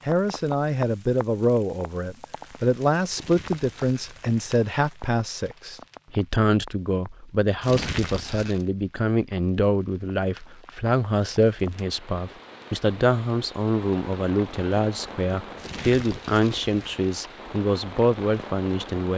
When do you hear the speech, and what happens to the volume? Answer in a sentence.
You can hear the speech from 0.1 to 19.1 s, at a steady volume.